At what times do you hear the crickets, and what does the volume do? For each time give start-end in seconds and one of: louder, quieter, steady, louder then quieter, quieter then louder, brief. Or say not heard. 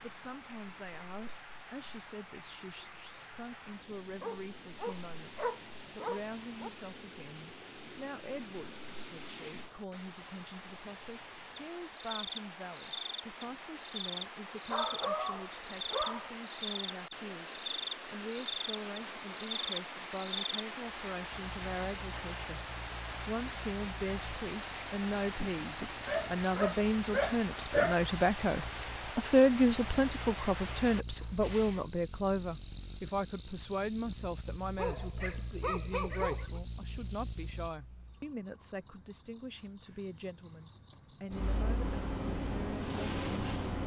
0.0-43.8 louder.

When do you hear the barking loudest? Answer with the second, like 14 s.
28 s.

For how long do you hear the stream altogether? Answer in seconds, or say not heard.
32 s.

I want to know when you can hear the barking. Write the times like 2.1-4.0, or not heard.
4.2-6.7, 14.7-16.3, 25.4-28.0, 34.8-36.6.